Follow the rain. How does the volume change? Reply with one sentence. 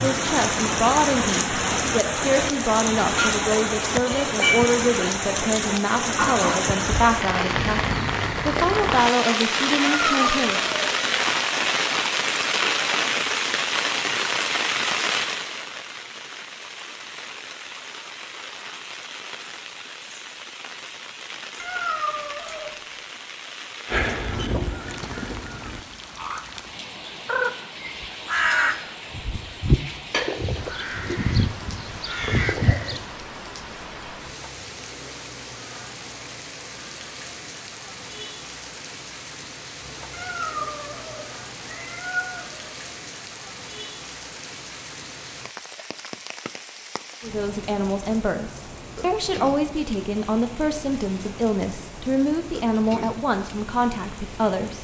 The volume of the rain goes down.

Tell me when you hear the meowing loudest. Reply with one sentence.
The loudest moment of the meowing is at 10 seconds.